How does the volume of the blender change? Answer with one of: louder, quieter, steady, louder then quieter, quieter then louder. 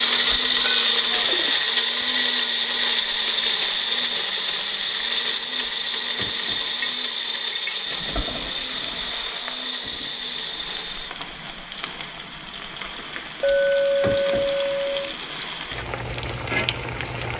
quieter.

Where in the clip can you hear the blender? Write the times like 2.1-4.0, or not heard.
0.0-11.2.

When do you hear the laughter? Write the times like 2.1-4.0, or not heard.
not heard.